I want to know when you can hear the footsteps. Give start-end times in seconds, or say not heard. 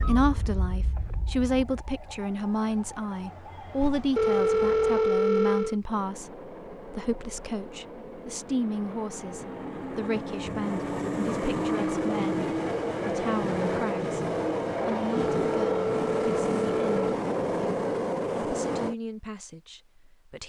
not heard.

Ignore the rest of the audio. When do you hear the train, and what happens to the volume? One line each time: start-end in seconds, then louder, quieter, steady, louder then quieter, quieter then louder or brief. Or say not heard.
5.8-18.9 louder.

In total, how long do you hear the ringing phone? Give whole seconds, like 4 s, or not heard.
4 s.